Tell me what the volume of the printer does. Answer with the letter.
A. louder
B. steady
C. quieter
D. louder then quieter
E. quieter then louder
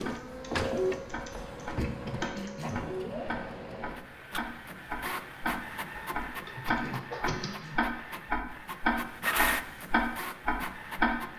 E.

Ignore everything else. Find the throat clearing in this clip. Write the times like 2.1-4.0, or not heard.
1.8-2.8, 6.8-7.8.